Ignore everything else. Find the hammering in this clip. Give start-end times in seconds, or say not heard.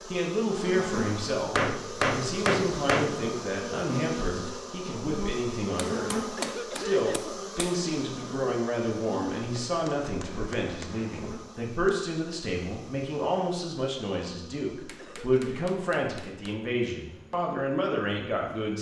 1.6-3.1, 5.8-7.8, 9.7-11.9, 14.8-16.6.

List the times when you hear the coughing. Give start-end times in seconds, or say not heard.
6.3-7.4, 14.9-15.6.